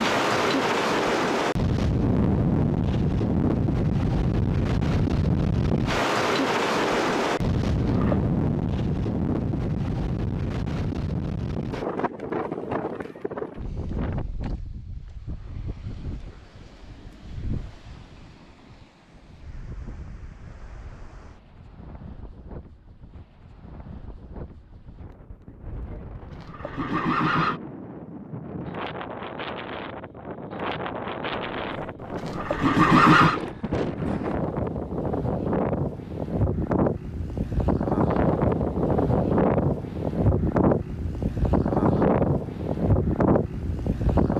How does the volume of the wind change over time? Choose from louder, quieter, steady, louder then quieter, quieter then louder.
quieter then louder.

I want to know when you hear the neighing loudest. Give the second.
33 s.